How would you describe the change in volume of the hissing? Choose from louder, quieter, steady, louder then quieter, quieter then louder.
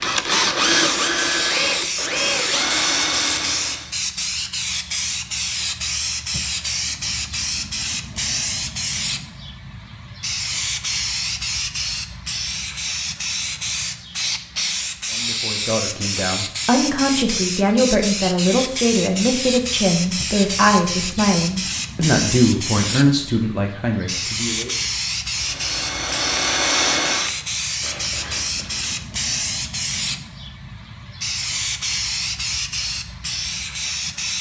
steady.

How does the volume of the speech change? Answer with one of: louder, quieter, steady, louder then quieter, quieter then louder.
steady.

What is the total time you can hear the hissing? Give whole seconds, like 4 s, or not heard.
34 s.